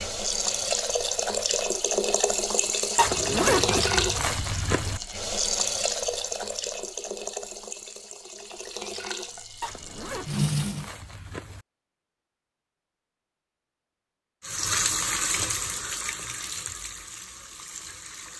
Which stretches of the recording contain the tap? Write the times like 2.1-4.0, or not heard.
0.0-10.9, 14.4-18.3.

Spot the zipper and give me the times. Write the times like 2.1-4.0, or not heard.
3.0-5.0, 9.6-11.7.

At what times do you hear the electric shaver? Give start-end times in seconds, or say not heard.
not heard.